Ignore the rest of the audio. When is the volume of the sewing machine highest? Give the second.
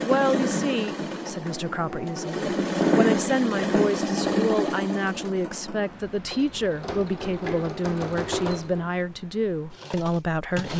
3 s.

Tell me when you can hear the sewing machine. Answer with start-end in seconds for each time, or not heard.
0.0-10.7.